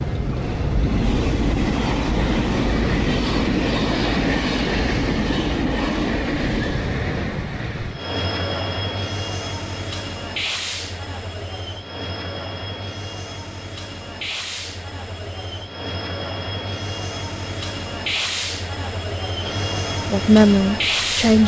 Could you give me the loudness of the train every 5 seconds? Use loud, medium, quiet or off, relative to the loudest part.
loud, loud, medium, medium, loud.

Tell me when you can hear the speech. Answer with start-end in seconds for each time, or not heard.
20.1-21.4.